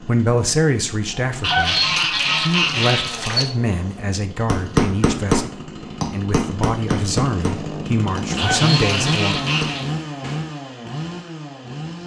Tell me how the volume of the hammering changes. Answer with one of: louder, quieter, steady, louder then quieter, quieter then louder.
quieter.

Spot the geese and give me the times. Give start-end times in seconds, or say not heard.
1.4-3.5, 8.3-9.9.